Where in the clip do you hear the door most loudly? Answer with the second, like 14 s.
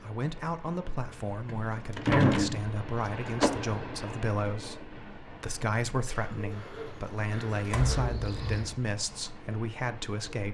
2 s.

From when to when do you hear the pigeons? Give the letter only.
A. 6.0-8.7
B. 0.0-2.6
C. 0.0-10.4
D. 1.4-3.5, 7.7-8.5
A.